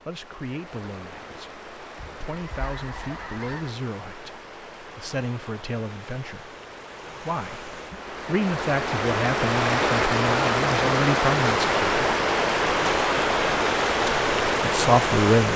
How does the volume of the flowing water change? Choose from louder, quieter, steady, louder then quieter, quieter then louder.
louder.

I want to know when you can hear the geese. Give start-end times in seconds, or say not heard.
1.9-3.8.